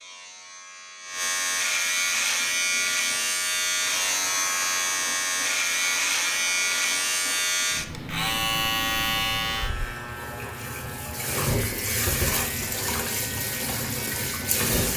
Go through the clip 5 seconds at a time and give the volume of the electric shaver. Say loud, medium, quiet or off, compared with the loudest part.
loud, loud, quiet.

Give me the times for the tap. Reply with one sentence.
The tap can be heard from 2.1 to 14.9 s.